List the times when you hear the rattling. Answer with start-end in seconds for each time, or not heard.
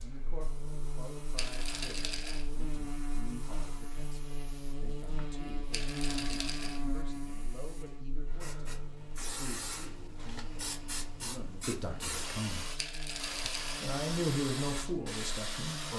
1.4-2.5, 5.7-6.8, 12.8-13.8.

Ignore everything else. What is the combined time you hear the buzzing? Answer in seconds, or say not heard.
16 s.